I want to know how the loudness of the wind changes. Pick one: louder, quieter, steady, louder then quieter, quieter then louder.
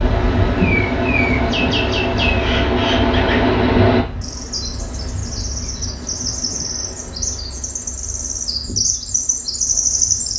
quieter.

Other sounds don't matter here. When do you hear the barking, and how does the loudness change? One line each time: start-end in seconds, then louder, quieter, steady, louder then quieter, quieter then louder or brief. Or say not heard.
not heard.